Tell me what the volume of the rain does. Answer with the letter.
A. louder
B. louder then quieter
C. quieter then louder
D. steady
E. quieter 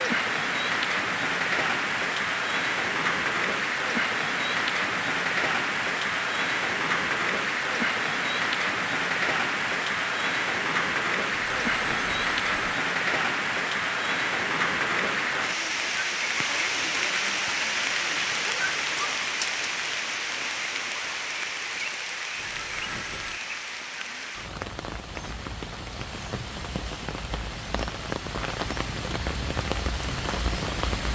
E.